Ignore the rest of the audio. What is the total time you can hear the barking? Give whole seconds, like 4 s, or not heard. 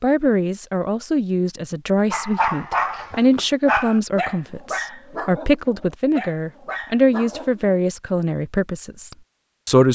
6 s.